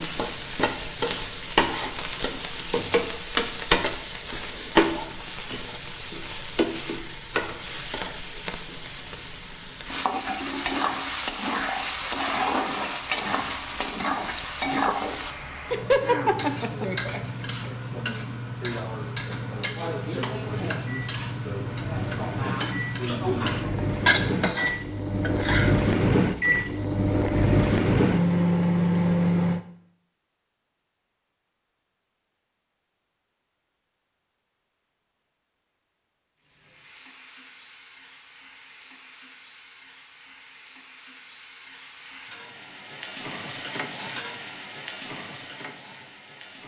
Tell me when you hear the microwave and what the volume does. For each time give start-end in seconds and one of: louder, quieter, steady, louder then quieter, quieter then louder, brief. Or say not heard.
20.4-29.6 louder.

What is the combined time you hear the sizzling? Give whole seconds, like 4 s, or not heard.
36 s.